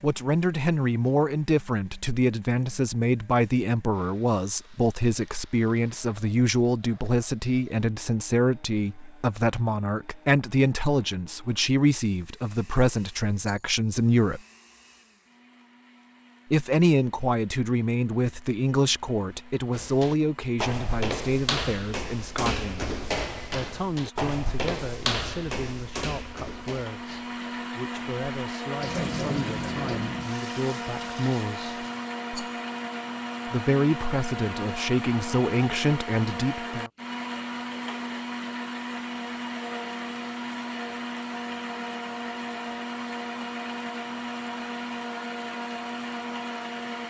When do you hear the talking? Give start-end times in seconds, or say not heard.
0.0-14.4, 16.5-31.8, 33.5-36.9.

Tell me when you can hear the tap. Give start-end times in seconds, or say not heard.
28.8-32.0.